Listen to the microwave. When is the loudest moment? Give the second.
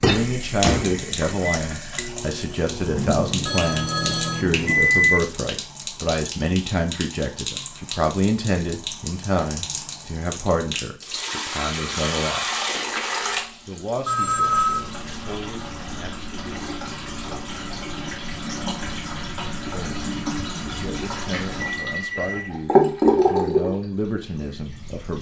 5 s.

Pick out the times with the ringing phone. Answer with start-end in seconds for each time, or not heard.
3.5-4.5, 14.1-14.8, 20.9-22.5.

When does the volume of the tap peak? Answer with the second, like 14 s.
23 s.